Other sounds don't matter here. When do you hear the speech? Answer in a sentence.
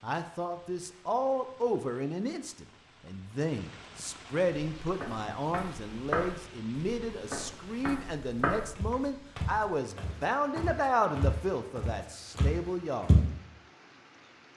You can hear the speech from 0.0 to 13.2 s.